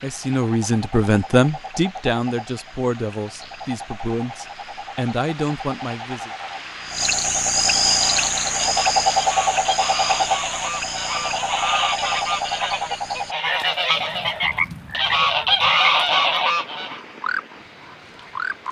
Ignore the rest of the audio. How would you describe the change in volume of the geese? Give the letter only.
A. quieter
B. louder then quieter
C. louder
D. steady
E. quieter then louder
C.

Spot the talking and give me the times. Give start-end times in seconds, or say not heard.
0.0-6.3.